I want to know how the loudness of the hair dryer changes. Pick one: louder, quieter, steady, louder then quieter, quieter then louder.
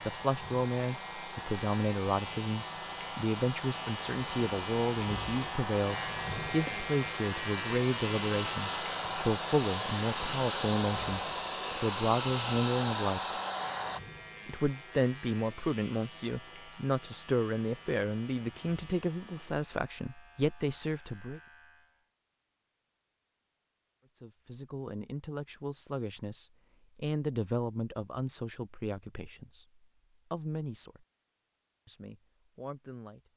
louder.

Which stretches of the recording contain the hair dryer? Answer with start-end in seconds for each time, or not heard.
0.0-14.0.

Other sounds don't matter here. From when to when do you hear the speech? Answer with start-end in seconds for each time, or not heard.
0.0-13.2, 14.4-21.4, 24.1-31.1, 31.9-33.3.